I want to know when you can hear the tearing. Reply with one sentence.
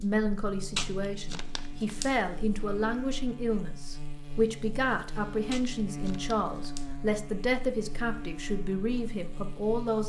The tearing can be heard from 0.8 to 2.2 s and from 5.5 to 7.0 s.